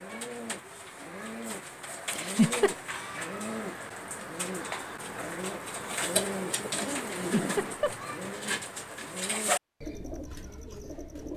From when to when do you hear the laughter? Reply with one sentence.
You can hear the laughter from 2.1 to 2.8 s and from 7.2 to 8.0 s.